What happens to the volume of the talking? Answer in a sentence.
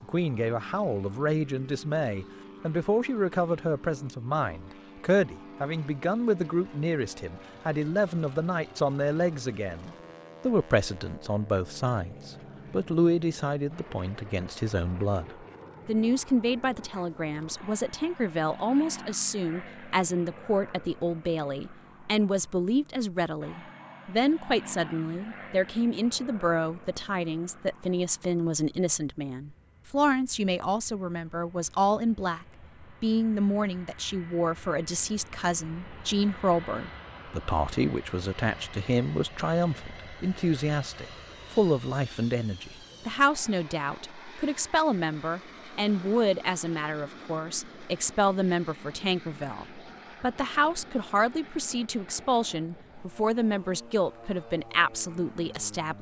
The loudness of the talking stays about the same.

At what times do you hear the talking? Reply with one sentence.
The talking can be heard from 0.0 to 55.9 s.